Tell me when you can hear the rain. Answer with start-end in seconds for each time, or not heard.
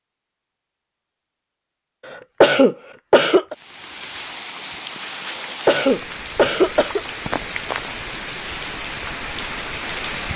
3.5-10.3.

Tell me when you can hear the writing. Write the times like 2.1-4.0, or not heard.
not heard.